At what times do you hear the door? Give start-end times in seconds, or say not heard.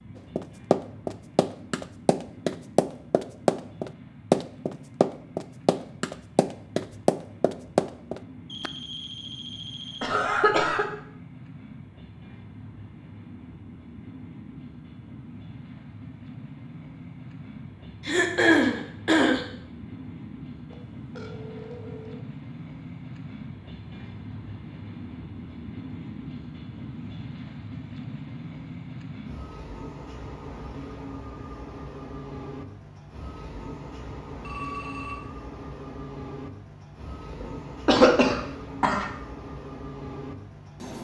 not heard.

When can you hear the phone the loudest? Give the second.
35 s.